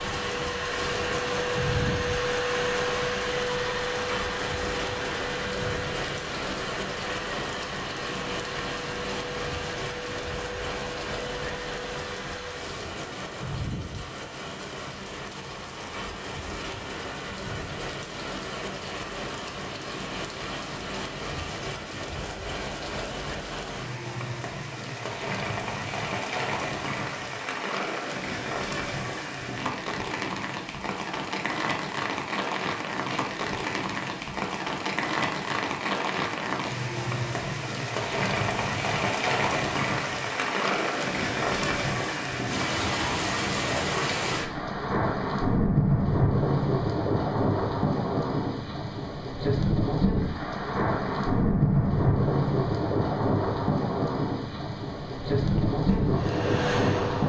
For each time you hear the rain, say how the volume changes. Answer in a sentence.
You can hear the rain from 0.0 to 57.2 s, getting louder.